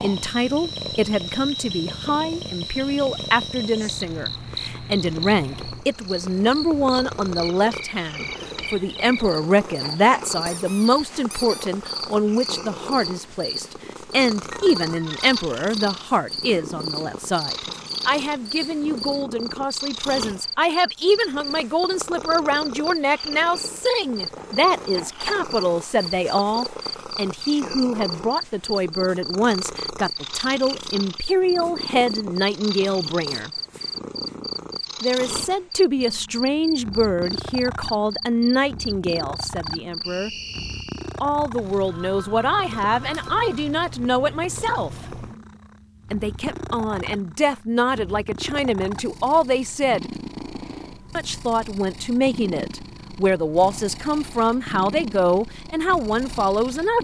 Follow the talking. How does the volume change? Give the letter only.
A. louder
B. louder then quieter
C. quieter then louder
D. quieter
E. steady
E.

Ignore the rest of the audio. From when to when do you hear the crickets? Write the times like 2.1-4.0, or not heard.
0.0-41.2.